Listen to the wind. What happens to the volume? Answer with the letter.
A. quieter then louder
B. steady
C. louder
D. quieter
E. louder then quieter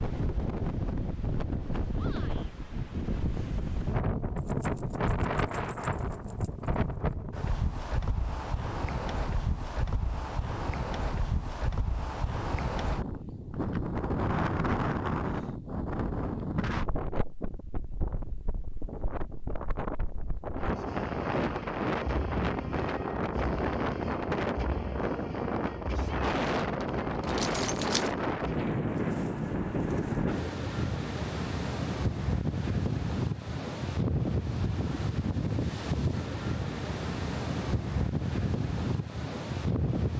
B.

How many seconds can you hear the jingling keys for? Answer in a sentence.
The jingling keys can be heard for 4 seconds in total.